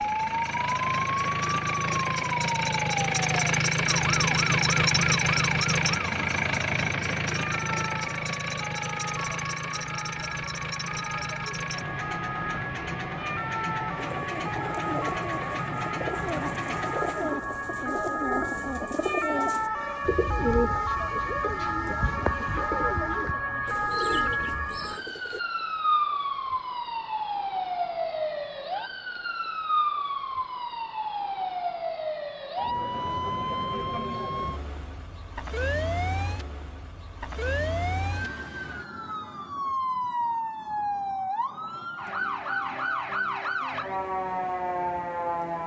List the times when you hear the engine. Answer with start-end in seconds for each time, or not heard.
0.0-17.4.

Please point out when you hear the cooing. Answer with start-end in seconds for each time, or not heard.
13.9-25.4.